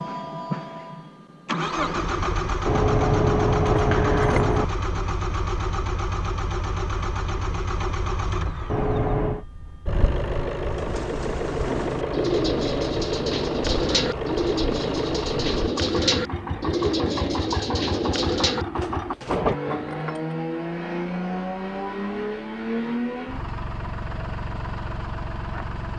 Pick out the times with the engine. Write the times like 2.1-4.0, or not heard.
0.0-25.9.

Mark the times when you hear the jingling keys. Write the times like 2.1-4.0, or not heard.
2.6-4.7, 8.7-9.4, 19.6-20.4.